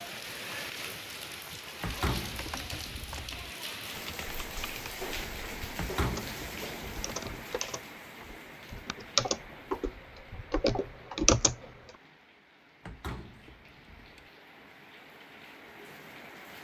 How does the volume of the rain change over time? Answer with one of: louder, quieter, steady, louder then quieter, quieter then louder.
quieter.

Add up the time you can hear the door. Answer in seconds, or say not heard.
4 s.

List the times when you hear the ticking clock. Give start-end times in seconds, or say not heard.
not heard.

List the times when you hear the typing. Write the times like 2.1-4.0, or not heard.
2.3-11.6.